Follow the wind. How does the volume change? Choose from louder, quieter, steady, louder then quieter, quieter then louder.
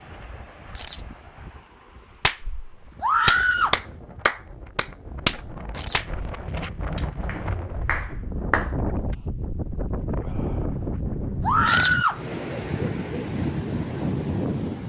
louder.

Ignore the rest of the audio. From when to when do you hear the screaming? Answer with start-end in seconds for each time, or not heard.
3.0-3.8, 11.4-12.2.